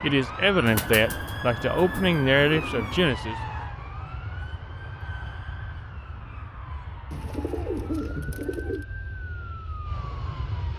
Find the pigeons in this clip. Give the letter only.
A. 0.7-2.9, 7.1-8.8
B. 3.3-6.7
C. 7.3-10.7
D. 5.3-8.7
A.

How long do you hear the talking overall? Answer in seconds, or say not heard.
3 s.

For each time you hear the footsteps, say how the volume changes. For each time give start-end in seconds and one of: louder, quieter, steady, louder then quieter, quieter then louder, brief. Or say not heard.
not heard.